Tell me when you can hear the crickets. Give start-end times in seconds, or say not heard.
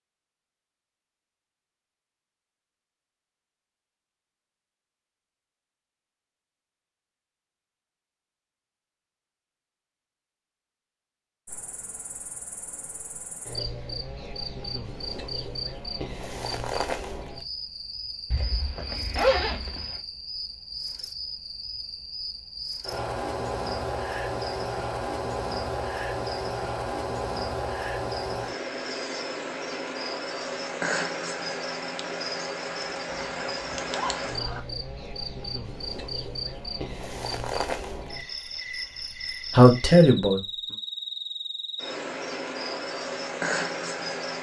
11.4-44.3.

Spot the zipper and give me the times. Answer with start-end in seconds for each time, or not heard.
18.3-20.0, 33.0-34.6.